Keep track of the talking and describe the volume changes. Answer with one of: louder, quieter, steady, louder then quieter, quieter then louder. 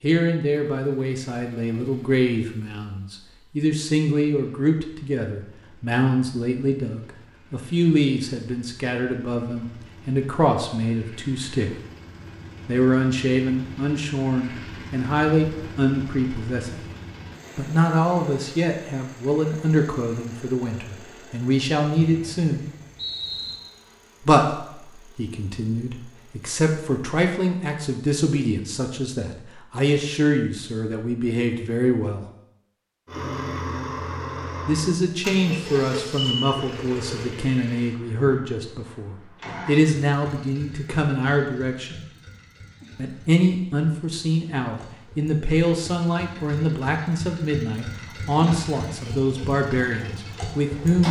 steady.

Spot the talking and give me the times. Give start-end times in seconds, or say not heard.
0.0-11.8, 12.7-16.8, 17.6-22.7, 24.2-32.2, 34.6-42.0, 43.0-51.0.